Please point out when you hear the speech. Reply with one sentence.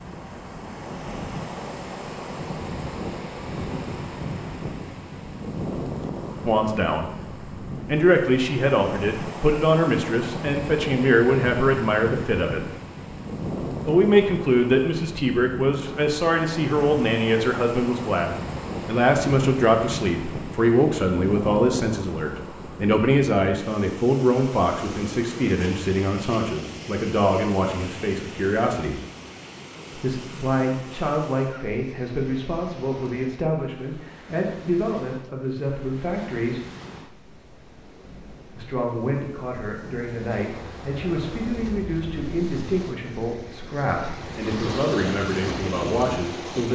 The speech can be heard from 6.5 to 7.1 s, from 7.8 to 12.7 s, from 13.8 to 29.0 s, from 29.9 to 36.6 s and from 38.5 to 46.7 s.